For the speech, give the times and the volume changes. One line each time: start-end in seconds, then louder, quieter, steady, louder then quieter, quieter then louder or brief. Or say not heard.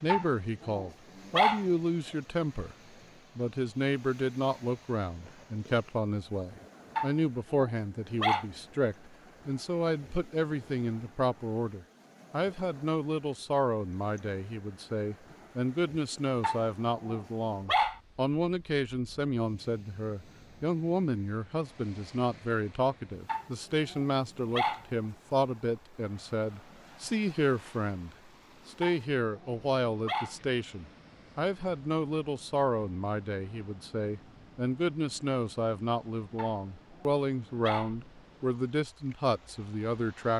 0.0-2.8 brief
3.4-40.3 steady.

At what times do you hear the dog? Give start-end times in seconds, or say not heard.
0.1-1.6, 7.0-8.4, 16.4-18.0, 23.2-24.9, 28.8-30.4, 36.4-37.9.